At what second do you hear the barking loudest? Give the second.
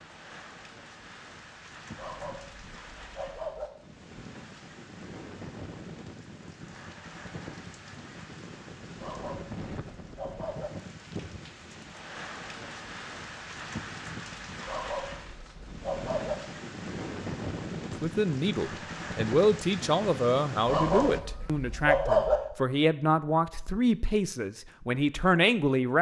22 s.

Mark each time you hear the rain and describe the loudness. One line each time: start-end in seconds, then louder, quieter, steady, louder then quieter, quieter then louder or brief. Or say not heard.
0.0-21.2 louder.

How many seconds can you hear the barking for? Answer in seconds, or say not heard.
7 s.